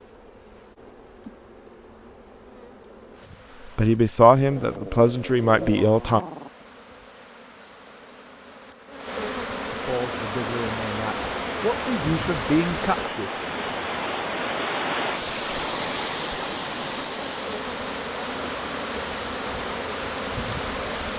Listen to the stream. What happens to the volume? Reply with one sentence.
The loudness of the stream goes up, then down.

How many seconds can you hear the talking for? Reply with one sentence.
The talking can be heard for 6 seconds in total.